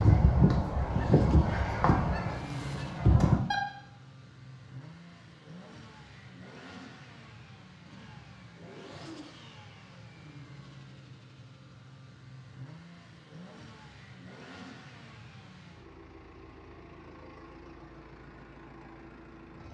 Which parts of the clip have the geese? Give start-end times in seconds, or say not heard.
0.0-3.5.